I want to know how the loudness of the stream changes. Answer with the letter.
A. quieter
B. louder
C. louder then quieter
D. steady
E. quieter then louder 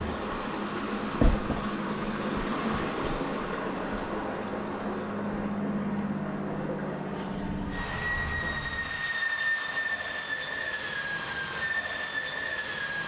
A.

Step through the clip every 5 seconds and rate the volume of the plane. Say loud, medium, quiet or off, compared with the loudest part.
medium, loud, loud.